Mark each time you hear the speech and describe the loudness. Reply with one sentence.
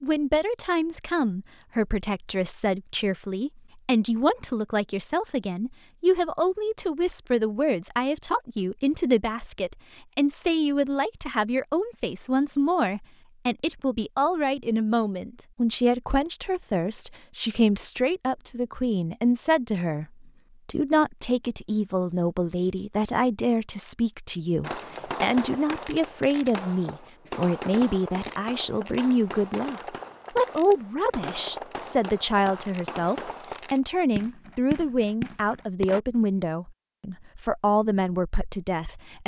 You can hear the speech from 0.0 to 39.2 s, at a steady volume.